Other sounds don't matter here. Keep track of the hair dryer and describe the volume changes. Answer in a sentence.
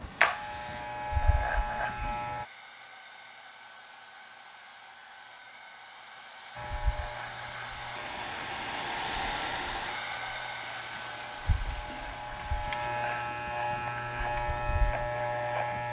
The loudness of the hair dryer goes up, then down.